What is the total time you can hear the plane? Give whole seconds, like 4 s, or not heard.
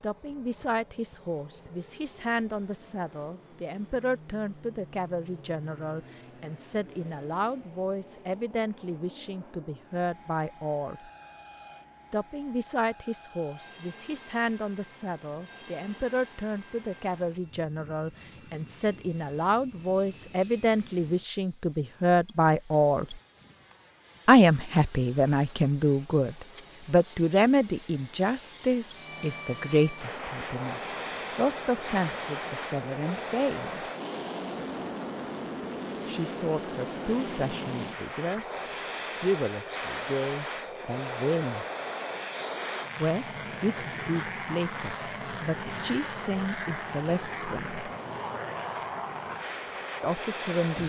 51 s.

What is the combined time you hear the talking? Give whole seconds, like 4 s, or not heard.
43 s.